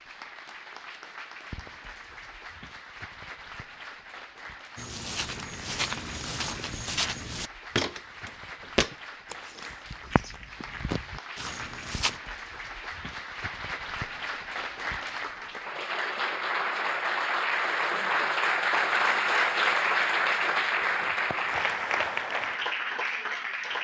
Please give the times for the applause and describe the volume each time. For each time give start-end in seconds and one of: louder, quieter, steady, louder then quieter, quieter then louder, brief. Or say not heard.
0.0-23.7 louder.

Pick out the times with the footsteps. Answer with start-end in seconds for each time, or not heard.
4.8-12.2.